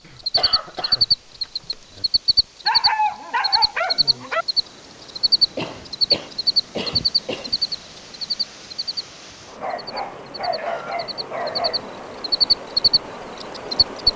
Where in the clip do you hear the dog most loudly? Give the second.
3 s.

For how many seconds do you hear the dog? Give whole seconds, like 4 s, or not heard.
4 s.